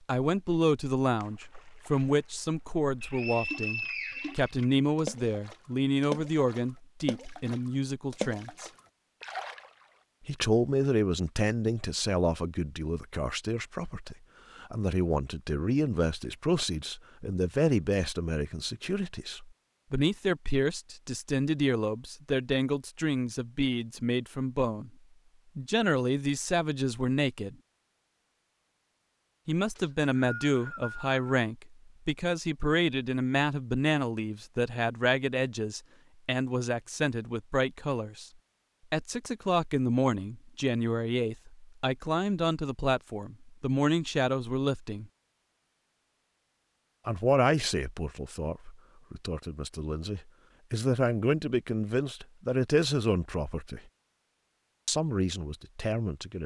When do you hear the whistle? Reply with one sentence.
You can hear the whistle from 3.0 to 4.5 s and from 29.8 to 31.1 s.